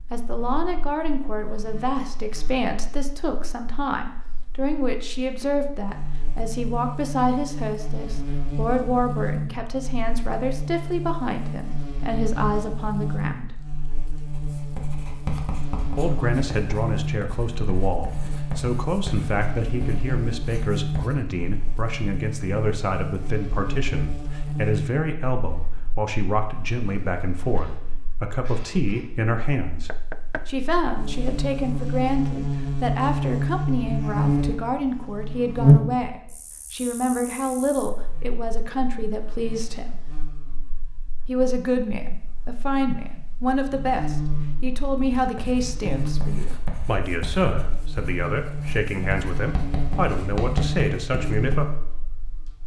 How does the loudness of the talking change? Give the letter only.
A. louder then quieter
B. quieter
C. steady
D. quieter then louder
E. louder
C.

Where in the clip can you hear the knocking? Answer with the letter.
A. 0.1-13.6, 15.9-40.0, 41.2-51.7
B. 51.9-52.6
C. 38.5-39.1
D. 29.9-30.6
D.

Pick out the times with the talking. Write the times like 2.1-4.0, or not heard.
0.1-13.6, 15.9-40.0, 41.2-51.7.